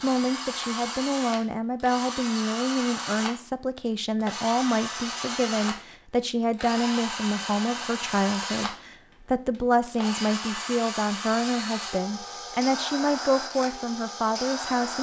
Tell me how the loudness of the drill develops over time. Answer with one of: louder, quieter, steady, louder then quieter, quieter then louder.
steady.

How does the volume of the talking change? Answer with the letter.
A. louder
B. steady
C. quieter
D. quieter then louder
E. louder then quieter
B.